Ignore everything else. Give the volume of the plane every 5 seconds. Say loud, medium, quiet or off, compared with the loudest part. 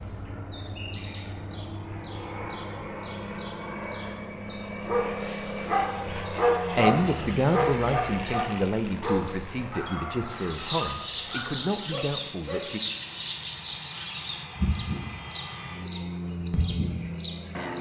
loud, loud, medium, loud.